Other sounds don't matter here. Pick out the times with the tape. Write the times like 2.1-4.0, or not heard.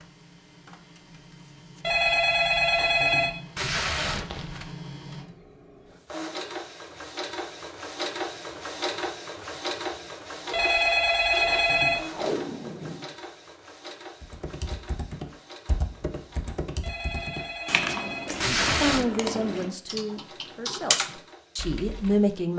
3.5-4.8, 12.1-13.1, 18.4-19.1.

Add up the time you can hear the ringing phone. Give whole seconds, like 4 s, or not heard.
5 s.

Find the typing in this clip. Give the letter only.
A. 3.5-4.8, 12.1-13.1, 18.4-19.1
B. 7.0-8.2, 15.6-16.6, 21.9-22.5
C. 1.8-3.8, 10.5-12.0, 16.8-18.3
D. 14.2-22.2
D.